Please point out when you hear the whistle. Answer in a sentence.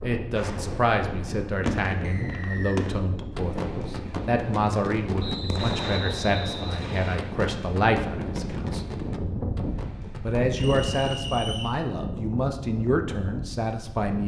You can hear the whistle from 2.0 to 2.8 s, from 5.2 to 7.2 s and from 10.6 to 11.8 s.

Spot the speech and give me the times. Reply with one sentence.
The speech can be heard from 0.0 to 8.8 s and from 10.2 to 14.2 s.